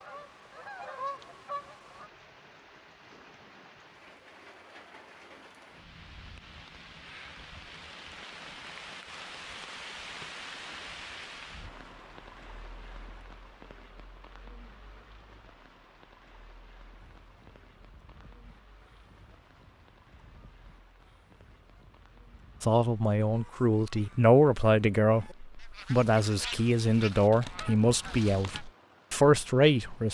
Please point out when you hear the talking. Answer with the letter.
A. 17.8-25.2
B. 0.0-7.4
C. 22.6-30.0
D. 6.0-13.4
C.